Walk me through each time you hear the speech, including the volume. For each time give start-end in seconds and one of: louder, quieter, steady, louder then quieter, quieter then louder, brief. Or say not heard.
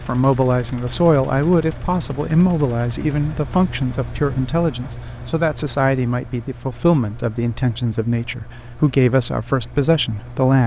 0.0-10.6 steady.